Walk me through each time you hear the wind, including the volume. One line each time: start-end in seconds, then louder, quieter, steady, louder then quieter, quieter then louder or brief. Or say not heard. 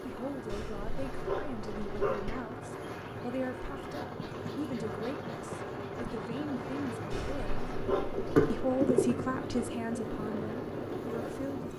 0.0-11.7 louder.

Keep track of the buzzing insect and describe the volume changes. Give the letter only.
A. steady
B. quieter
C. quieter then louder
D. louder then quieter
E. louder
D.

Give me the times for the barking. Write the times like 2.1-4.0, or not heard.
0.5-2.4, 7.1-8.7.